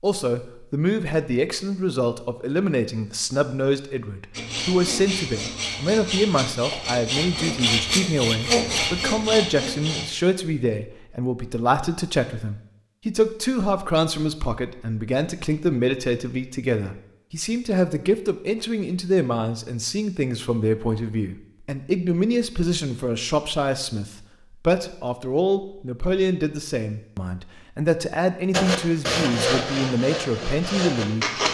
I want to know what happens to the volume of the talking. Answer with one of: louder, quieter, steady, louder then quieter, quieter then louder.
steady.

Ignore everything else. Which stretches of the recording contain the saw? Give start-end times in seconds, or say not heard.
4.3-10.1, 28.5-31.4.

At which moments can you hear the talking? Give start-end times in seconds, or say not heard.
0.0-31.4.